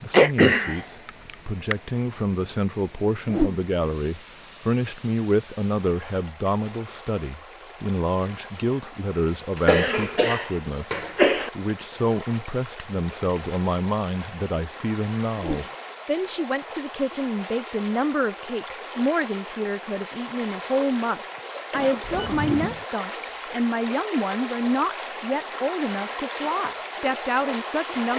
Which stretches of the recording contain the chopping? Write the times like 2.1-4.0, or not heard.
not heard.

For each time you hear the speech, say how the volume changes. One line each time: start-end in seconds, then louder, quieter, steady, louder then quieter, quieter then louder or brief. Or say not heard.
0.0-28.1 steady.